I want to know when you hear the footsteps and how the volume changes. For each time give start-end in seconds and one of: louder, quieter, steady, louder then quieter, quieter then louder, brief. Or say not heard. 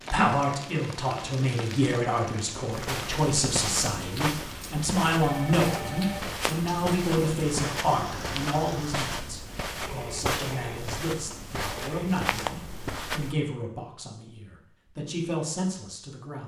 2.7-13.3 steady.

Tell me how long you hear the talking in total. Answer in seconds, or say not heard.
16 s.